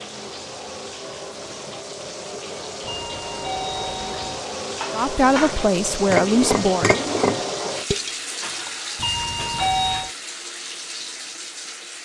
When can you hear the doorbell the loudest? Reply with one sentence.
The volume of the doorbell peaks at 10 seconds.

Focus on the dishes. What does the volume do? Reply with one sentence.
The volume of the dishes goes up, then down.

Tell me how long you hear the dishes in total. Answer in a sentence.
You can hear the dishes for 5 seconds altogether.